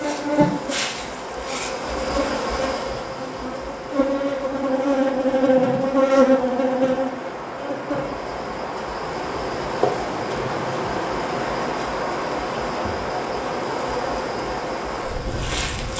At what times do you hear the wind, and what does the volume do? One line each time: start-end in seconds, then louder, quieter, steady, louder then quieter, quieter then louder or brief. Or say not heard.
0.0-15.9 louder.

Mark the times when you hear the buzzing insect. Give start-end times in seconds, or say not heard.
0.0-15.9.